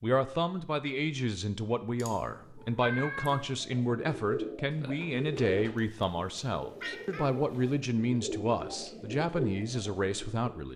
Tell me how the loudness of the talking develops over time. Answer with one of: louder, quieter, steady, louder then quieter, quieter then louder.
steady.